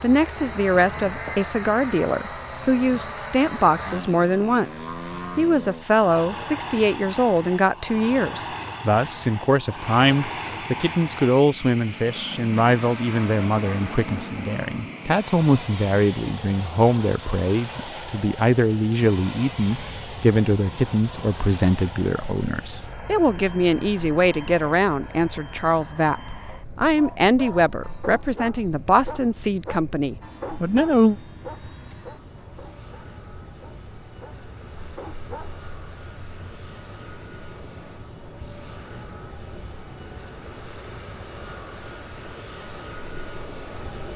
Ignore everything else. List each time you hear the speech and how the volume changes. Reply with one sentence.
The speech can be heard from 0.0 to 31.1 s, at a steady volume.